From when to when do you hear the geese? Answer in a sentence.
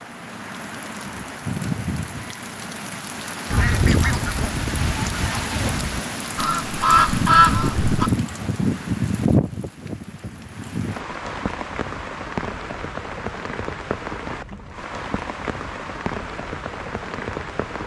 The geese can be heard from 3.5 to 8.1 s.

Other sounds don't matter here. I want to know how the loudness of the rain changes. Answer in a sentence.
The volume of the rain goes up, then down.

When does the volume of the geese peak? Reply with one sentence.
The loudest moment of the geese is at 7 seconds.